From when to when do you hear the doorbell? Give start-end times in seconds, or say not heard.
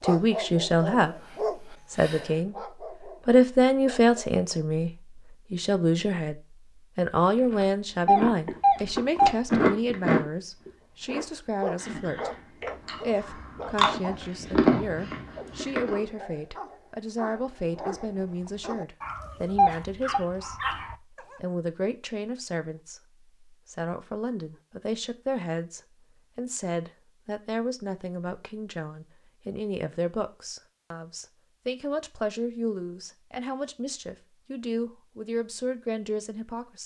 8.1-9.3, 19.6-20.2.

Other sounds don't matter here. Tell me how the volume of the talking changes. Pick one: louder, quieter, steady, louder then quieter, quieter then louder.
quieter.